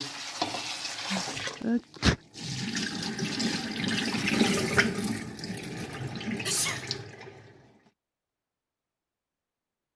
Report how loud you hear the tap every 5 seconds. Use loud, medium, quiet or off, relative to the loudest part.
loud, medium.